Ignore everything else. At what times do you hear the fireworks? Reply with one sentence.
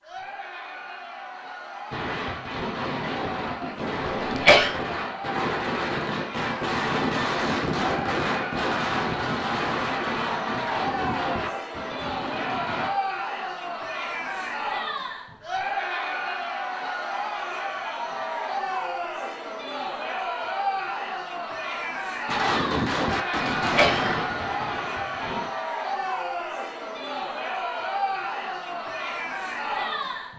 The fireworks can be heard from 1.9 to 12.9 s and from 22.2 to 25.5 s.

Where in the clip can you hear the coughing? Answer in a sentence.
You can hear the coughing from 4.0 to 4.8 s and from 23.4 to 24.2 s.